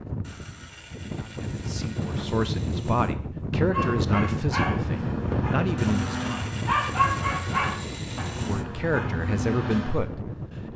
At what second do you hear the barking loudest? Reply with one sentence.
The volume of the barking peaks at 7 seconds.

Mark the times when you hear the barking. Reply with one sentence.
You can hear the barking from 3.7 to 10.2 s.